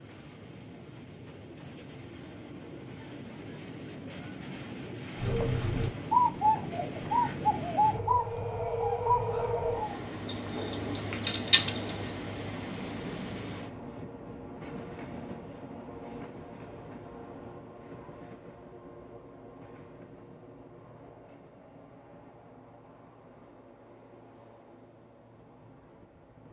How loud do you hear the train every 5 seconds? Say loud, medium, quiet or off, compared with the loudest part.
medium, loud, loud, medium, quiet, quiet.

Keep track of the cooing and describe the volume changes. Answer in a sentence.
The volume of the cooing goes down, then up.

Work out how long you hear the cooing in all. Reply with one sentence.
You can hear the cooing for 7 seconds altogether.